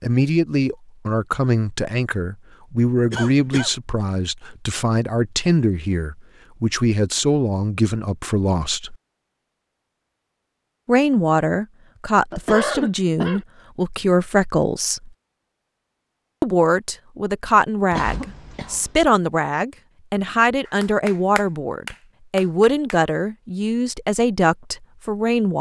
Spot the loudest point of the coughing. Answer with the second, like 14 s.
13 s.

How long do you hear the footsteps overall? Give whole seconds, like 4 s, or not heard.
not heard.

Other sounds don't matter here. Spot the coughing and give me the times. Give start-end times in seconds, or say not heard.
3.1-3.7, 12.3-13.4, 17.9-18.9.